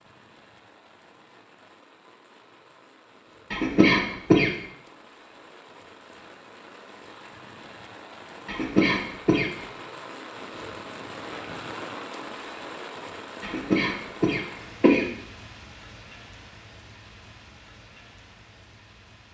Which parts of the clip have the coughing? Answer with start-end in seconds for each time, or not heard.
3.5-4.5, 8.4-9.6, 13.4-15.1.